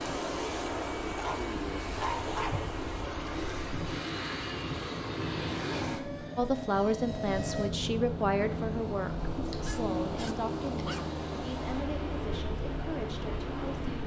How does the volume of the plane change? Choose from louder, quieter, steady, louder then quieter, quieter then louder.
steady.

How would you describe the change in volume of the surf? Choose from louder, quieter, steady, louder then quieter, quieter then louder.
steady.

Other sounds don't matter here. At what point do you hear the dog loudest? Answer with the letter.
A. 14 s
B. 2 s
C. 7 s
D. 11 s
B.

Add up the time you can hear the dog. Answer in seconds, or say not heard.
3 s.